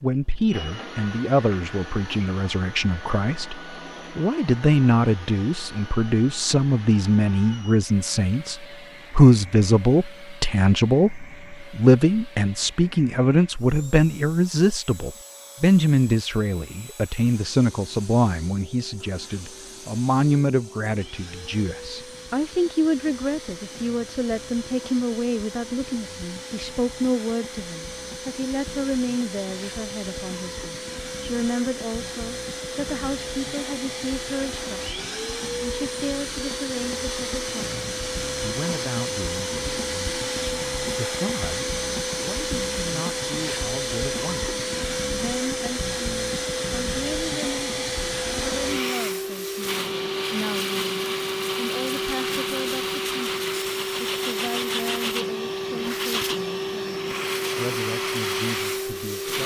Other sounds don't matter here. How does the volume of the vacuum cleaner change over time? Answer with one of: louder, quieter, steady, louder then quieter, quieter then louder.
louder.